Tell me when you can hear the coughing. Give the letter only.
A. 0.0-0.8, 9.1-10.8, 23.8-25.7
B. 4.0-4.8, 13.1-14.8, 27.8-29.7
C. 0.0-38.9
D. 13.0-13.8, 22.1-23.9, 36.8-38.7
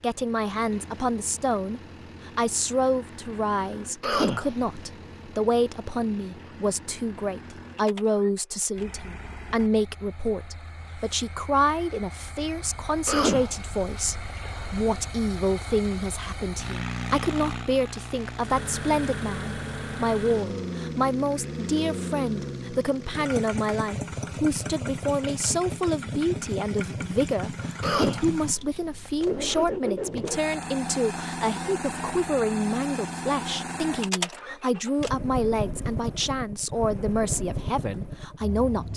B.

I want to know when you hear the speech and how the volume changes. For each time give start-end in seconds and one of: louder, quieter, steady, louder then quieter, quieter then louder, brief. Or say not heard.
0.0-38.9 steady.